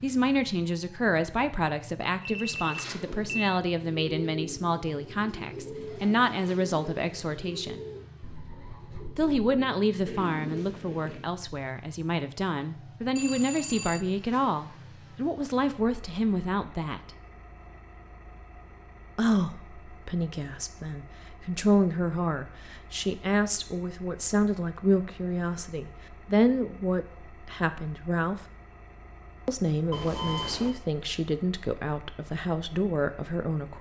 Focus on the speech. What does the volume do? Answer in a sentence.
The loudness of the speech stays about the same.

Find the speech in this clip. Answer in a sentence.
You can hear the speech from 0.0 to 7.8 s, from 9.2 to 17.1 s, from 19.1 to 28.4 s and from 29.4 to 33.7 s.